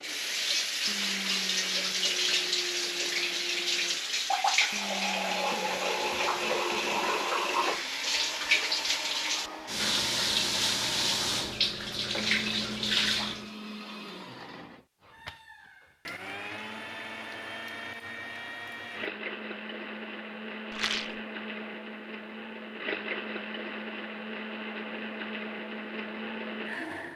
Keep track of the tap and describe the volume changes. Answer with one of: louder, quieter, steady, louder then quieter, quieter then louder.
steady.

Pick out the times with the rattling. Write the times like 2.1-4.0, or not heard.
20.7-21.2.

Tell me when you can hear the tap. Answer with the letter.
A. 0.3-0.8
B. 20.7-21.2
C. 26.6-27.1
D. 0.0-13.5
D.